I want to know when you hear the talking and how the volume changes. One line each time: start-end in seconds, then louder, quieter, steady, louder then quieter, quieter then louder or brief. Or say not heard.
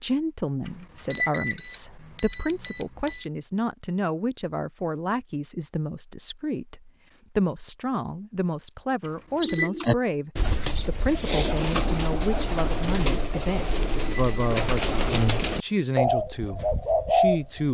0.0-17.6 steady.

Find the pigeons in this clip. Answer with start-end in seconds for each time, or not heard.
9.3-17.6.